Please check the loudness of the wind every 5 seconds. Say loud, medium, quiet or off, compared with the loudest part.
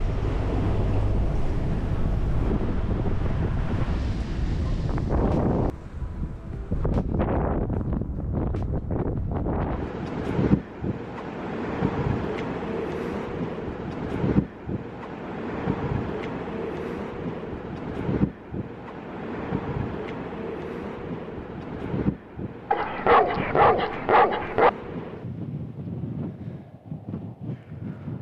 loud, loud, loud, loud, medium, medium.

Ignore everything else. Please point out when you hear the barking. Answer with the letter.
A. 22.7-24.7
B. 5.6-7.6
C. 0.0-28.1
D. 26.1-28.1
A.